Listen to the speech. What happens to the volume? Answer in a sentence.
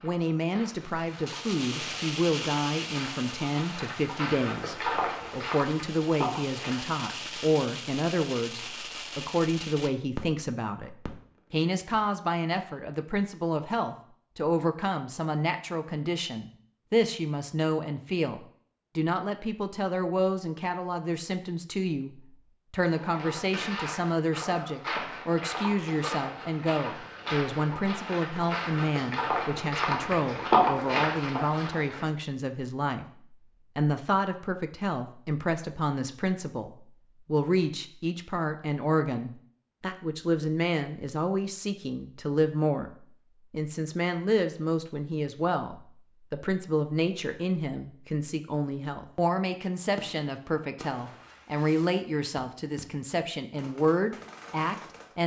The loudness of the speech stays about the same.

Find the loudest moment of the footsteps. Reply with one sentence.
The loudest moment of the footsteps is at 31 seconds.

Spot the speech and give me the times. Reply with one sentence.
You can hear the speech from 0.0 to 55.2 s.